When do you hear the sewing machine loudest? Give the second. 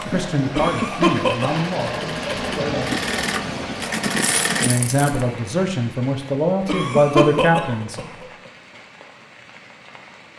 4 s.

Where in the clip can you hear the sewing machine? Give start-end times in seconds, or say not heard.
0.0-4.8.